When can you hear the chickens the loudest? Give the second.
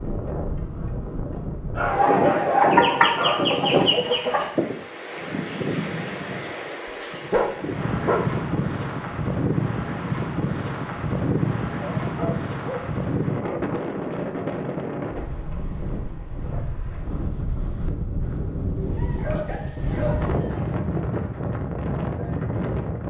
3 s.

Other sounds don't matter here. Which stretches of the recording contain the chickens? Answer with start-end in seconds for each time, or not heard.
2.6-4.5.